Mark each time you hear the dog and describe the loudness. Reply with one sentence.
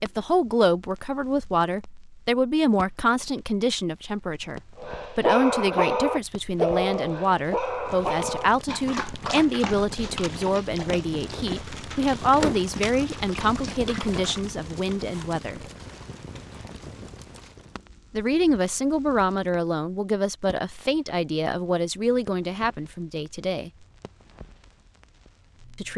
You can hear the dog from 4.8 to 14.4 s, getting quieter.